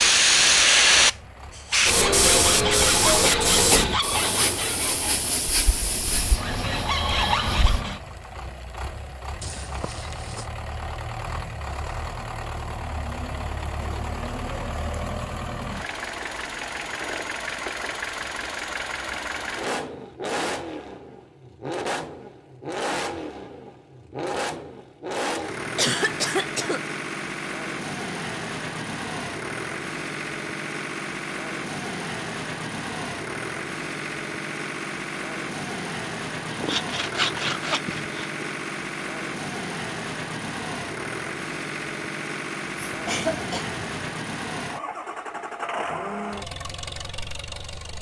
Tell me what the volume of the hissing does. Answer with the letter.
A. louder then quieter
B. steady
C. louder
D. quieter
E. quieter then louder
D.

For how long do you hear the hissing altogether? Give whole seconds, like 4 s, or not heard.
8 s.